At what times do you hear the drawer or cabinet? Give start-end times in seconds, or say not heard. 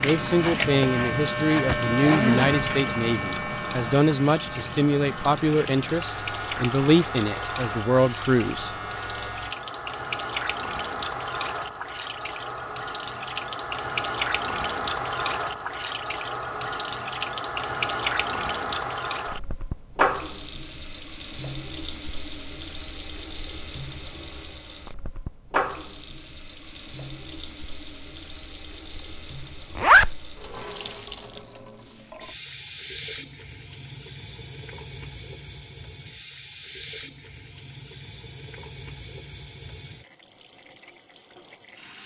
not heard.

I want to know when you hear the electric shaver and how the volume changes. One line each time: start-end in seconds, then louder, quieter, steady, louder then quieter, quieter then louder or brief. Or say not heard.
0.0-9.6 quieter.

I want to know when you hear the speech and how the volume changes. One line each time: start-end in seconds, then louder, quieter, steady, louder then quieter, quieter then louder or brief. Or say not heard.
0.0-8.8 steady.